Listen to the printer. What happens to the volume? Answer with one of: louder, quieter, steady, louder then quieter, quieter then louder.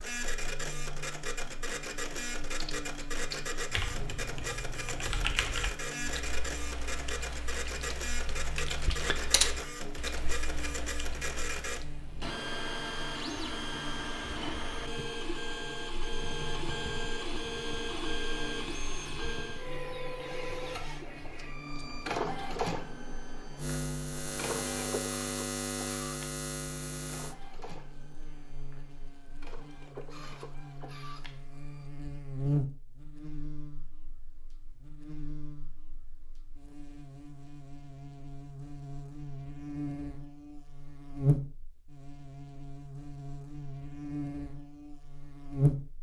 quieter.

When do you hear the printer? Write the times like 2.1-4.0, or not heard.
0.0-31.9.